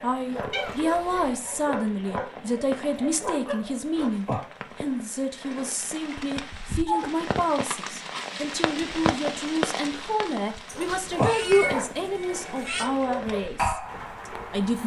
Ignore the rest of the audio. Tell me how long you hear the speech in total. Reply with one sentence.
The speech can be heard for 15 seconds in total.